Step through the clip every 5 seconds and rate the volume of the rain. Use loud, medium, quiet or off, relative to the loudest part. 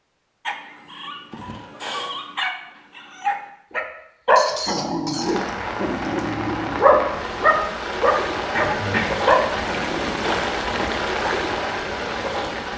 off, loud, loud.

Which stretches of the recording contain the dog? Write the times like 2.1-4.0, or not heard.
0.5-10.9.